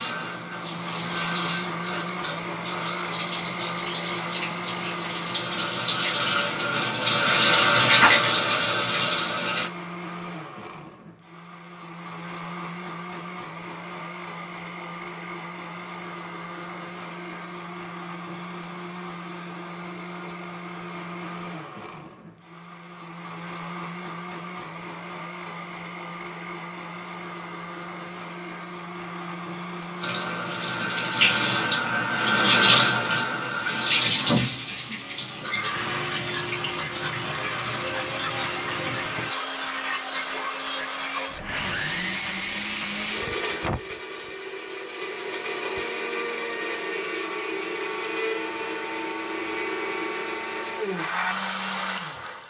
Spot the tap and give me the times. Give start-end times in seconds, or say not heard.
0.0-9.7, 30.0-39.3.